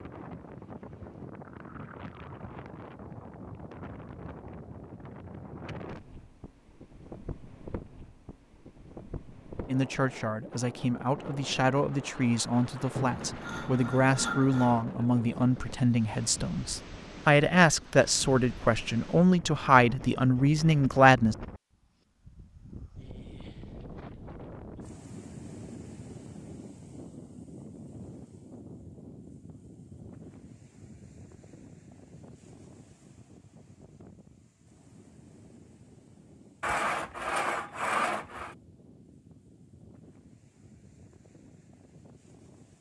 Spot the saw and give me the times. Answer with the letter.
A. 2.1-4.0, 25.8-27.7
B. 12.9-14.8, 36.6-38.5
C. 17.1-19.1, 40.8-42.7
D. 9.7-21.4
B.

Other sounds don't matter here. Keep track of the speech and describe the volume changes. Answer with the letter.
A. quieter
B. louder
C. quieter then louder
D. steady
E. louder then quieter
B.